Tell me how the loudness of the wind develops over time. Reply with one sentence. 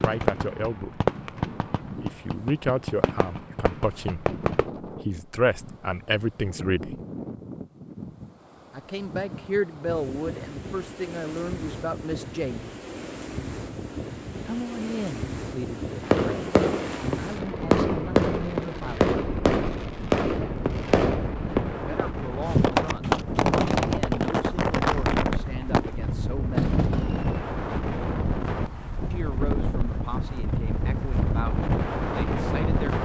The loudness of the wind goes up.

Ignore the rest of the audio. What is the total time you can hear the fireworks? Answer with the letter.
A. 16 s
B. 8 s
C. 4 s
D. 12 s
A.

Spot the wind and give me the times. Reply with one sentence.
You can hear the wind from 0.2 to 33.0 s.